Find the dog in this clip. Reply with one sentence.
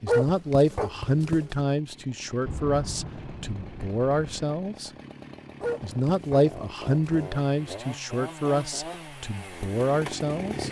You can hear the dog from 0.1 to 1.6 s and from 5.6 to 7.3 s.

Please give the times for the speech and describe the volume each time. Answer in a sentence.
The speech can be heard from 0.0 to 4.9 s, getting quieter then louder; and from 5.8 to 10.6 s, getting quieter then louder.